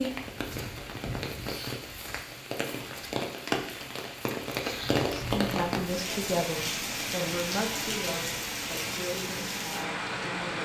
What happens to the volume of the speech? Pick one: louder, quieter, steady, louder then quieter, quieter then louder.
quieter.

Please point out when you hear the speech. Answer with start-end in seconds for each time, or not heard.
5.1-10.6.